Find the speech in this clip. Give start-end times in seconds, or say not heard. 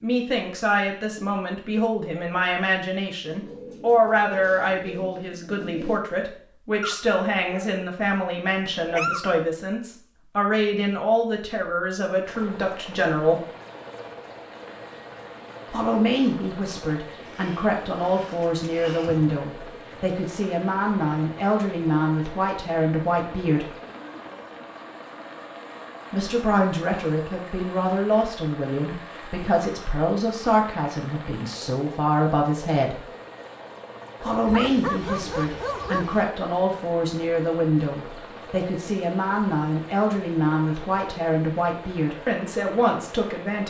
0.0-13.4, 15.7-23.7, 26.1-33.0, 34.2-43.6.